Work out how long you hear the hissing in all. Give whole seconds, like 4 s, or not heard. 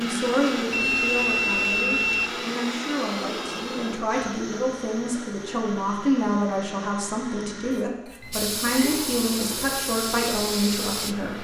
3 s.